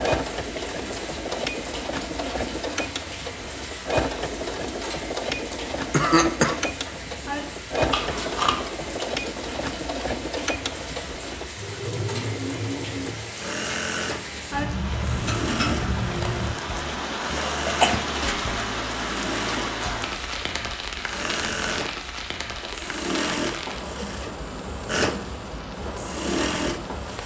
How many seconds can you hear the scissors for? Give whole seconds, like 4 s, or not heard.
3 s.